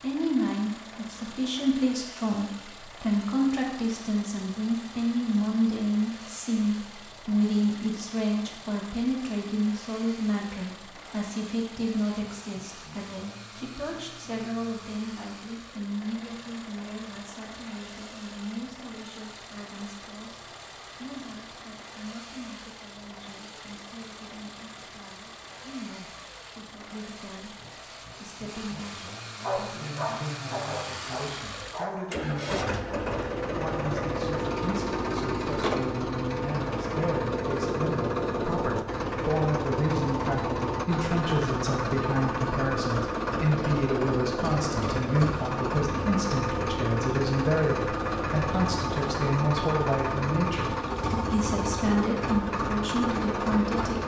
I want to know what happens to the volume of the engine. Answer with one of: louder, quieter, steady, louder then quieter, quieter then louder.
louder.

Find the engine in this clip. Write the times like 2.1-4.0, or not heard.
0.0-54.0.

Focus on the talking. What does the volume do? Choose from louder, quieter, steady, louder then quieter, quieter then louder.
quieter then louder.